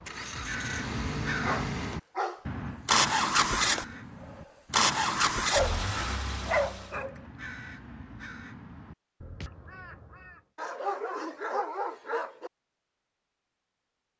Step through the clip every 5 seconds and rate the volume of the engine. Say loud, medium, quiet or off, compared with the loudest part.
loud, loud, off.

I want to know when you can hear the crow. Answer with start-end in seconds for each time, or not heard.
0.2-10.4.